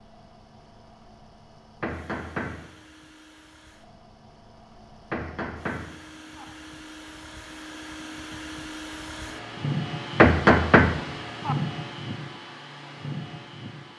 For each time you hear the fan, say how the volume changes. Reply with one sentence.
You can hear the fan from 0.0 to 13.9 s, getting louder.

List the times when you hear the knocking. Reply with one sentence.
You can hear the knocking from 1.8 to 2.6 s, from 5.1 to 6.5 s and from 10.2 to 11.6 s.